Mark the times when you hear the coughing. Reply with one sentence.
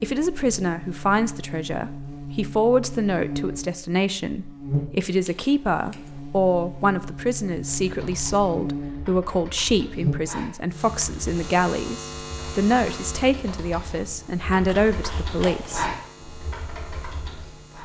The coughing can't be heard in this clip.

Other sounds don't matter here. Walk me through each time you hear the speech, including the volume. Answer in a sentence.
The speech can be heard from 0.0 to 15.8 s, at a steady volume.